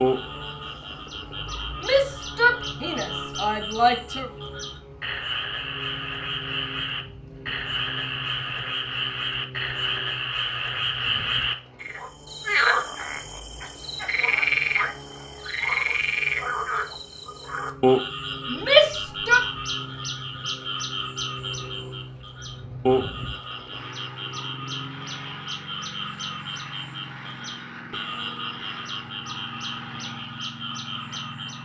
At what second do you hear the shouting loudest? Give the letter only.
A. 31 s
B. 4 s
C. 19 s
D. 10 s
C.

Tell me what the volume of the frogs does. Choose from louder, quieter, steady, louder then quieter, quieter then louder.
louder then quieter.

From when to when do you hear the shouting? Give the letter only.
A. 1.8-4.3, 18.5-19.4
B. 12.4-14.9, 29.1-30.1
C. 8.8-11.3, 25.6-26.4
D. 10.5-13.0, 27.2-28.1
A.